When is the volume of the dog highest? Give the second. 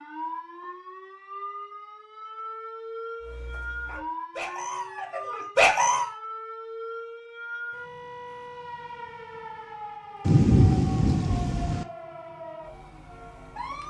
6 s.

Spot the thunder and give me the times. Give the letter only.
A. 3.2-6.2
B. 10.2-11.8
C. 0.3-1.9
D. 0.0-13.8
B.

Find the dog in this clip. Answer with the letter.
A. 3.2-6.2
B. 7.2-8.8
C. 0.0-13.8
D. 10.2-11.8
A.